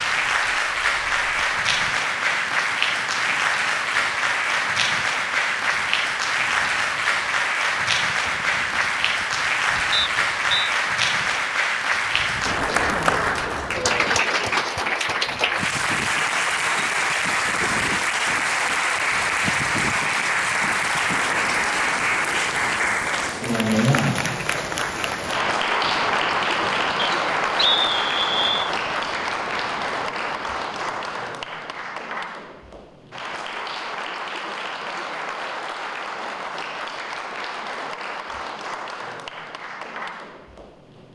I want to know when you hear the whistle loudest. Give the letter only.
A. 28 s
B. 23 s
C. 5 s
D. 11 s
A.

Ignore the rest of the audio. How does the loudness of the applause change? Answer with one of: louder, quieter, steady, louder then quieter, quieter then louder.
quieter.